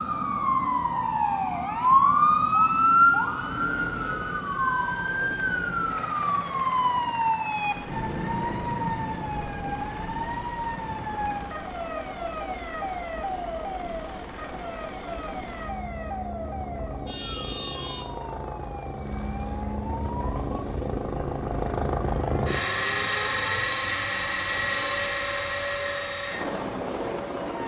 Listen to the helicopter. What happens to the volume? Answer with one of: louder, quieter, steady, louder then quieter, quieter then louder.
louder.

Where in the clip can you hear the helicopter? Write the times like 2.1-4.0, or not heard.
3.3-27.6.